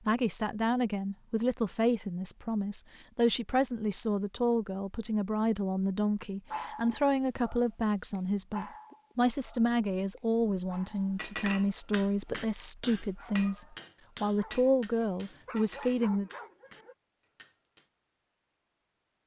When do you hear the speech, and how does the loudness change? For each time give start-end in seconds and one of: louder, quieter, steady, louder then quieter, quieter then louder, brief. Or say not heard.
0.1-16.3 steady.